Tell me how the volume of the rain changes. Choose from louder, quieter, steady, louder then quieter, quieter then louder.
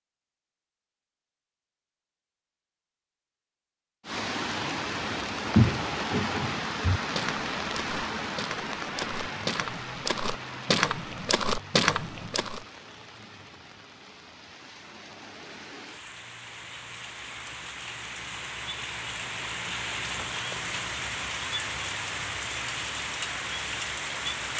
quieter then louder.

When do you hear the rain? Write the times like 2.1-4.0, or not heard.
4.0-24.5.